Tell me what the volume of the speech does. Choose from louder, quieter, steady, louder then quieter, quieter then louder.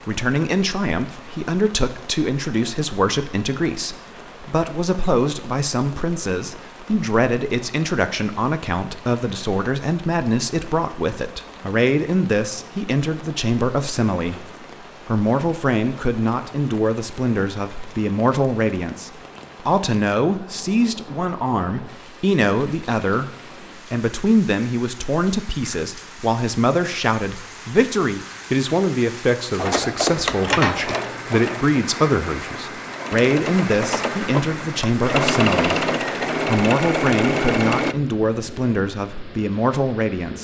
steady.